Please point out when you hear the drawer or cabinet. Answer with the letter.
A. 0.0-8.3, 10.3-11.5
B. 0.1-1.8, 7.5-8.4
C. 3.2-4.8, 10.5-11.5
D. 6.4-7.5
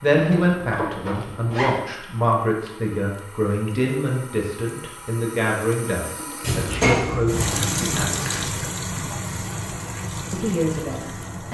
D.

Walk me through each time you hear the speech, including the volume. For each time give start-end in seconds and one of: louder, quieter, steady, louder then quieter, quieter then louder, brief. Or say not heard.
0.0-8.3 steady
10.3-11.5 brief.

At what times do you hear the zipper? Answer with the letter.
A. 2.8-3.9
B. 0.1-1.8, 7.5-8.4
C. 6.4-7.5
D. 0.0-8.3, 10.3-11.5
B.